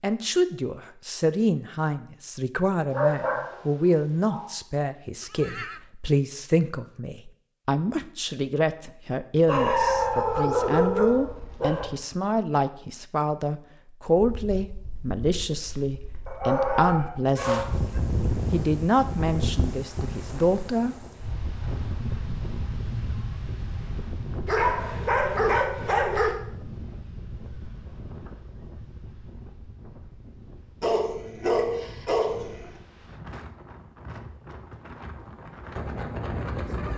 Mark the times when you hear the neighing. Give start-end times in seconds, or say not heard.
5.2-5.8.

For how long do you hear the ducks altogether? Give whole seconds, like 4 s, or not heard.
not heard.